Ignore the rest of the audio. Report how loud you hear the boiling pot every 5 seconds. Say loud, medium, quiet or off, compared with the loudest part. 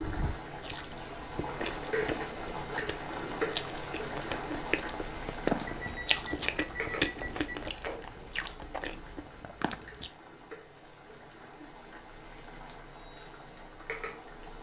loud, medium, medium.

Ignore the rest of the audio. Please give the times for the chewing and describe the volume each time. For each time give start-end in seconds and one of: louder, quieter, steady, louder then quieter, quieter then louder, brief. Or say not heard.
0.6-10.1 louder then quieter.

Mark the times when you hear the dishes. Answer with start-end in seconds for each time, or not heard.
not heard.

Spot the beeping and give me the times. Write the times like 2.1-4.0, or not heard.
5.7-7.7.